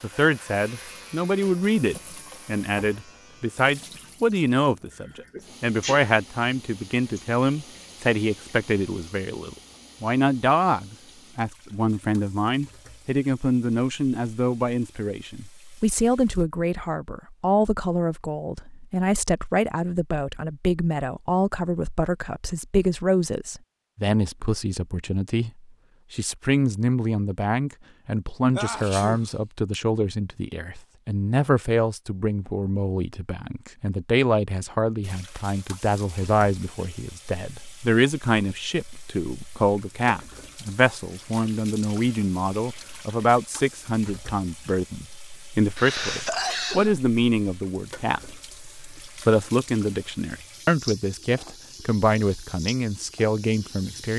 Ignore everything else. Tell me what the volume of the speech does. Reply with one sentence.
The volume of the speech stays about the same.